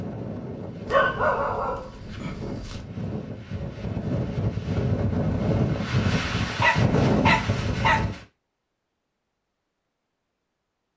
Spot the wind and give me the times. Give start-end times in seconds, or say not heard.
0.0-8.2.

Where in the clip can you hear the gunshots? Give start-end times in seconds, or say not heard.
not heard.